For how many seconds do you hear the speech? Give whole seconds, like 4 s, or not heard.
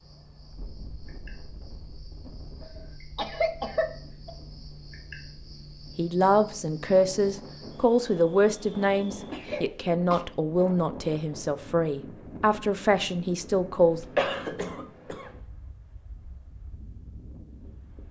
8 s.